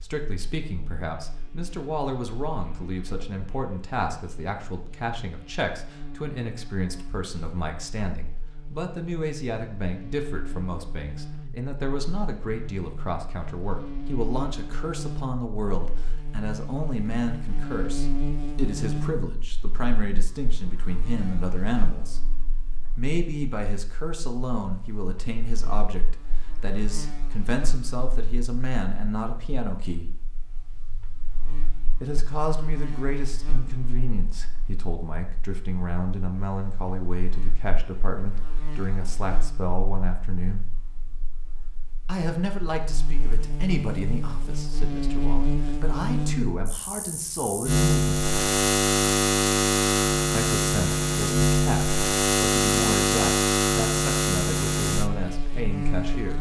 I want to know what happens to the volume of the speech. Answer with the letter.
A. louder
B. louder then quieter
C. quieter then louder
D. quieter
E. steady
E.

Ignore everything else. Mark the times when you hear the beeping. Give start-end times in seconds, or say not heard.
not heard.